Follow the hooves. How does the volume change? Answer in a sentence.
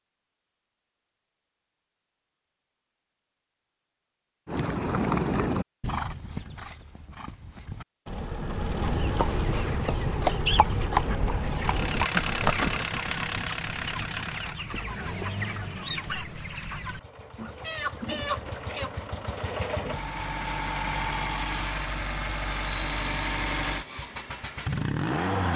The volume of the hooves goes down, then up.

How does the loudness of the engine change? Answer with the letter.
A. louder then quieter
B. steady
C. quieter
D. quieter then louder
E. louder
D.